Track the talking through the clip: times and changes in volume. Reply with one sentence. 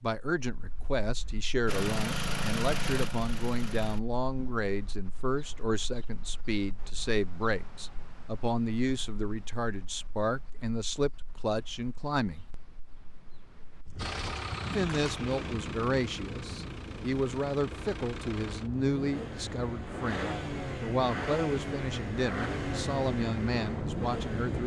You can hear the talking from 0.0 to 12.4 s, at a steady volume; and from 14.7 to 24.6 s, at a steady volume.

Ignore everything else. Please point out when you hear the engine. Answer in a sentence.
You can hear the engine from 1.6 to 4.5 s and from 13.9 to 24.6 s.